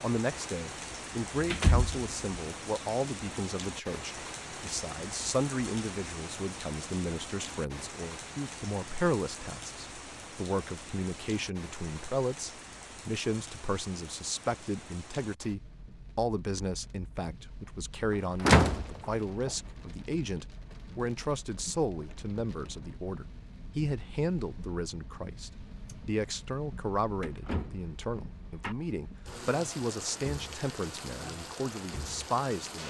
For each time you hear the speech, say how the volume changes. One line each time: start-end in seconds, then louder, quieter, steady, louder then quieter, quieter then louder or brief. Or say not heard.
0.0-32.8 steady.